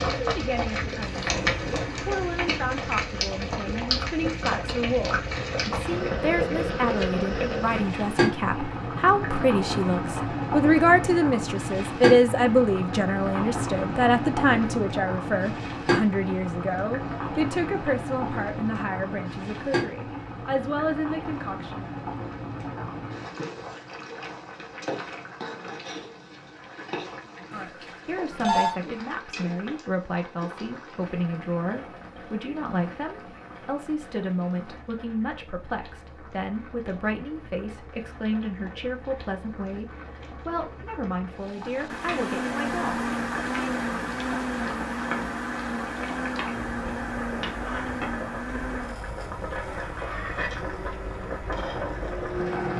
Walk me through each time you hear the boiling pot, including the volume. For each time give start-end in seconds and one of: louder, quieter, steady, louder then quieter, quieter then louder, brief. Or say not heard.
0.0-52.7 quieter then louder.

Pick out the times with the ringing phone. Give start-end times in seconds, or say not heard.
27.5-28.8.